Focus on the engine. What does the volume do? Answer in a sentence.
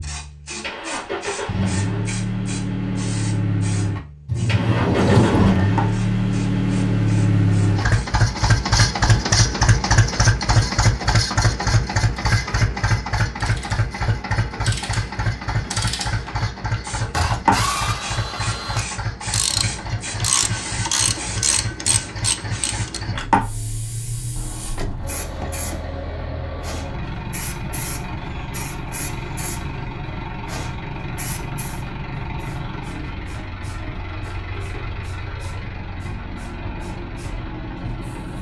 The volume of the engine goes down.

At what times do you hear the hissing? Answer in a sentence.
You can hear the hissing from 0.0 to 8.1 s and from 16.8 to 38.3 s.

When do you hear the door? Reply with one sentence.
The door can be heard from 4.2 to 5.7 s and from 24.4 to 25.8 s.